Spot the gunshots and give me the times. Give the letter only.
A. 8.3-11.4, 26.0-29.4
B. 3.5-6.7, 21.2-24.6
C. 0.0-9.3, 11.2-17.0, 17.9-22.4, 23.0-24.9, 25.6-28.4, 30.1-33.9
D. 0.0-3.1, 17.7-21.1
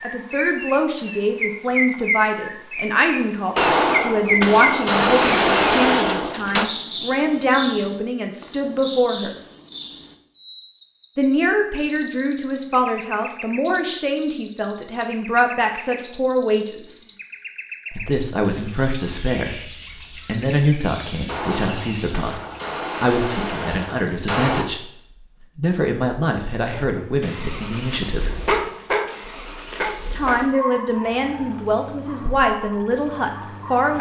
B.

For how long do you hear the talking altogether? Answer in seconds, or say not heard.
28 s.